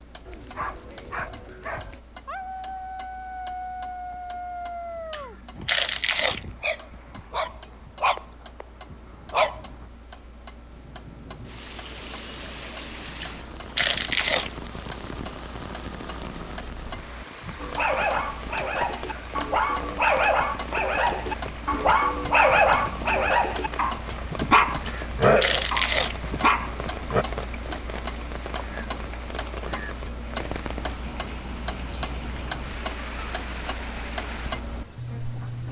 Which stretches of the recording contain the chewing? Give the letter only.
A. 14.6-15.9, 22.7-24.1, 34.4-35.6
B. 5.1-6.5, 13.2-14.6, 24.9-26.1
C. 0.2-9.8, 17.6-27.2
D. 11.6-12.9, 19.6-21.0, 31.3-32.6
B.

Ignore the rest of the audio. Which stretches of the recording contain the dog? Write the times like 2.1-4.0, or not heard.
0.2-9.8, 17.6-27.2.